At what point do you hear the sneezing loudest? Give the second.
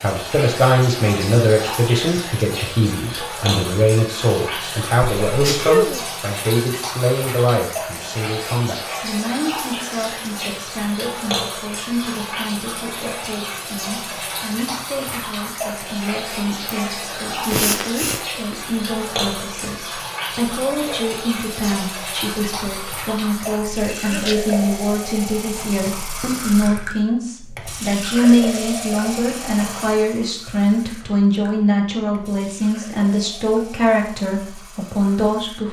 6 s.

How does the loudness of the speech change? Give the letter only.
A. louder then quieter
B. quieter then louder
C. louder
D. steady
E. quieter
B.